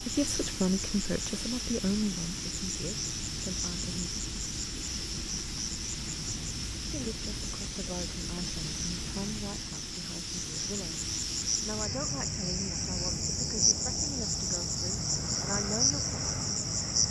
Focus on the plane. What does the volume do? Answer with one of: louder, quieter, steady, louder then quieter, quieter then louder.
steady.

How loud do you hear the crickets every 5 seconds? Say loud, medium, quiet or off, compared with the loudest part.
medium, medium, loud, loud.